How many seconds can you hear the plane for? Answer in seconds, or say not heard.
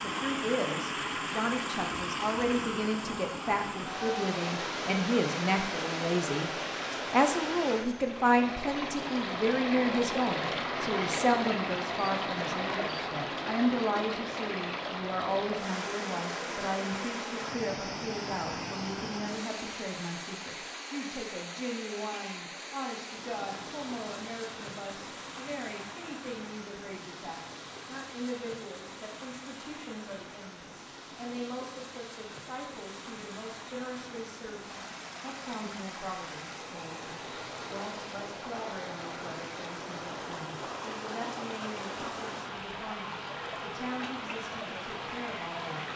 not heard.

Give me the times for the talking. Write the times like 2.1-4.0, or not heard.
0.0-45.9.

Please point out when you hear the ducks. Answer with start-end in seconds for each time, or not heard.
not heard.